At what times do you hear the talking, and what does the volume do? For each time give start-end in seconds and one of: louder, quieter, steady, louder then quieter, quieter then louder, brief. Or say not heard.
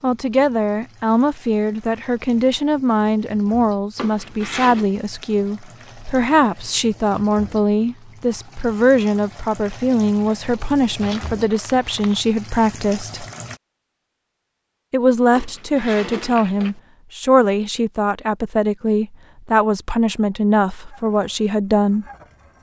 0.0-13.2 steady
14.9-22.1 steady.